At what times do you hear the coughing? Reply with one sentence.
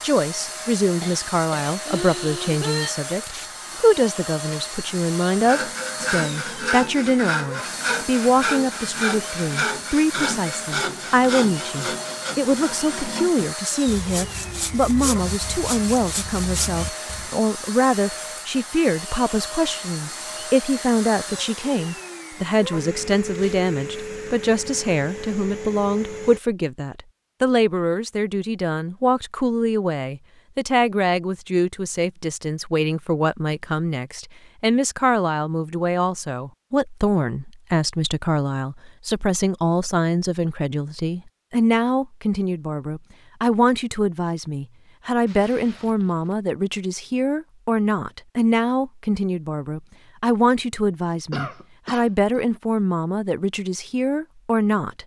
The coughing can be heard from 1.0 to 3.0 s and from 51.3 to 52.5 s.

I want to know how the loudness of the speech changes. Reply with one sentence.
The loudness of the speech stays about the same.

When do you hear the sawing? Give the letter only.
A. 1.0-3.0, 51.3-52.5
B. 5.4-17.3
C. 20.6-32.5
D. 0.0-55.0
B.